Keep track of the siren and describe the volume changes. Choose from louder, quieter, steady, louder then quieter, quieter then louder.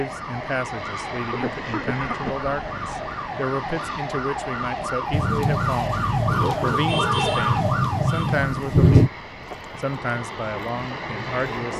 louder.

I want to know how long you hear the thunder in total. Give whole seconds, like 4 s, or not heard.
4 s.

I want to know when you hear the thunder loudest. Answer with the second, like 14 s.
9 s.